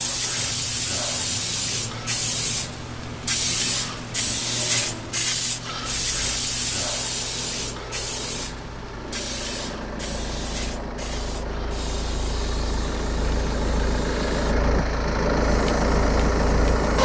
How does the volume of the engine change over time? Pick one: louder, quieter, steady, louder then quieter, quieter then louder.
louder.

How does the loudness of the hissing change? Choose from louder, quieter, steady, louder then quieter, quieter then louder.
quieter.